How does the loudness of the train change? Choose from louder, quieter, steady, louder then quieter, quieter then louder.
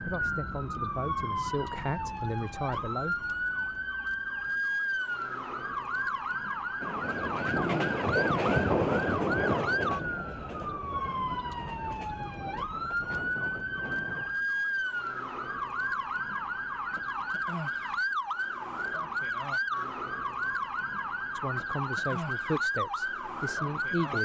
quieter.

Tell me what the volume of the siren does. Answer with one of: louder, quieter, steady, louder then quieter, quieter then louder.
steady.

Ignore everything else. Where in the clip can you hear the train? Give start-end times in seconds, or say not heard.
6.8-14.3.